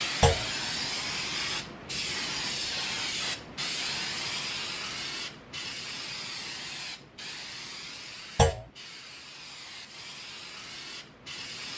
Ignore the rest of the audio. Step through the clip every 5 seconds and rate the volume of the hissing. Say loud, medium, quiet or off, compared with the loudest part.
loud, medium, medium.